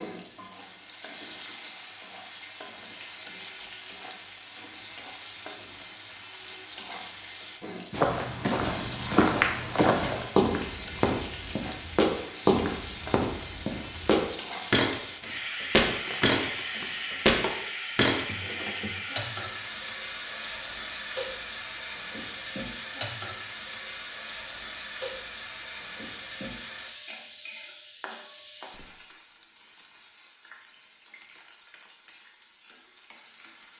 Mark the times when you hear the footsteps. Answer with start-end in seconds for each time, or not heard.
7.9-18.6.